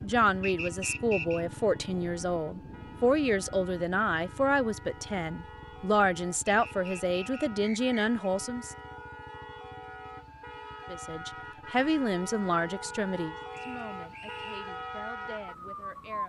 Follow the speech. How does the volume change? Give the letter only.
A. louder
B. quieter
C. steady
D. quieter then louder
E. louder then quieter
B.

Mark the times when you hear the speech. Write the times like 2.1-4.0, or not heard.
0.0-8.8, 10.9-16.2.